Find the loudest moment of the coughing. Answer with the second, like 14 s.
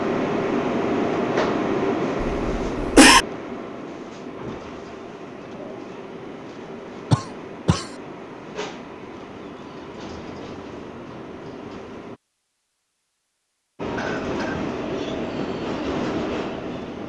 3 s.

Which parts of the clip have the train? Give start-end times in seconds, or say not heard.
0.0-12.2, 13.8-17.0.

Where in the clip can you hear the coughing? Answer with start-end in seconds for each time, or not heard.
2.4-3.2, 7.1-7.8, 13.9-14.6.